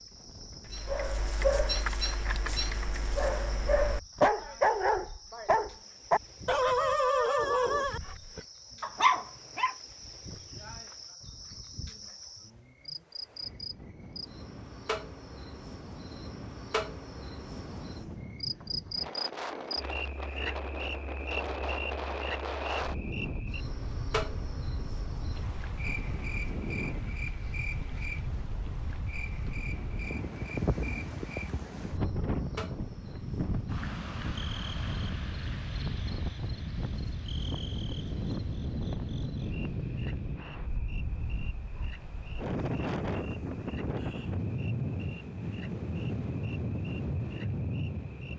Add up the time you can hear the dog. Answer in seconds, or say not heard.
9 s.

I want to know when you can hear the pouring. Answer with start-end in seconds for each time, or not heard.
not heard.